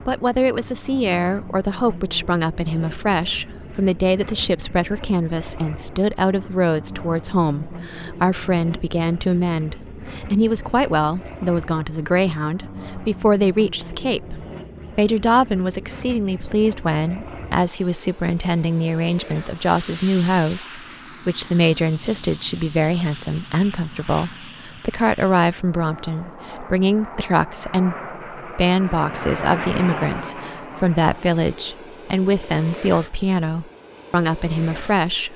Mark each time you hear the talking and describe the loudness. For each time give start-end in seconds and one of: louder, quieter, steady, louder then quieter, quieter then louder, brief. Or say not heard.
0.1-35.3 steady.